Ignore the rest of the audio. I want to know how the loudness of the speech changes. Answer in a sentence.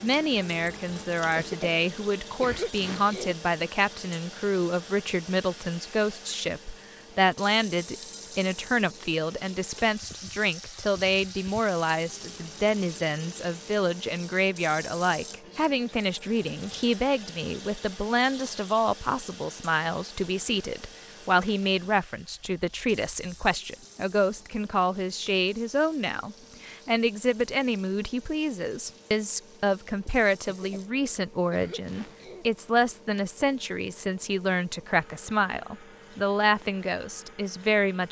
The loudness of the speech stays about the same.